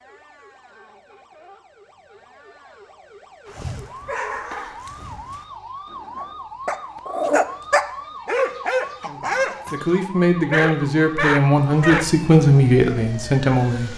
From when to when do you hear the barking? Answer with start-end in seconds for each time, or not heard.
3.5-12.1.